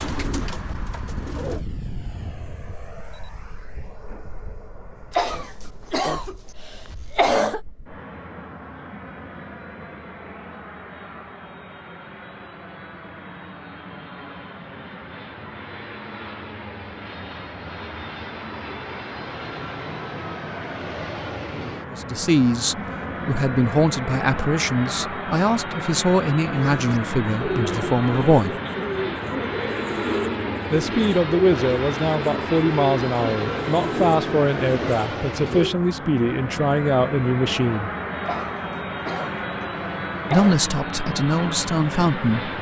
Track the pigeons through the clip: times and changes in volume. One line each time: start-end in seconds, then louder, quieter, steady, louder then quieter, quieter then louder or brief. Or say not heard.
0.0-1.6 brief
26.6-35.8 steady.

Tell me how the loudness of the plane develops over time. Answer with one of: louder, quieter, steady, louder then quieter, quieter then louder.
louder.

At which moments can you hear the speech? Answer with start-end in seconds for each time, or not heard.
21.9-28.6, 30.7-37.9, 40.3-42.5.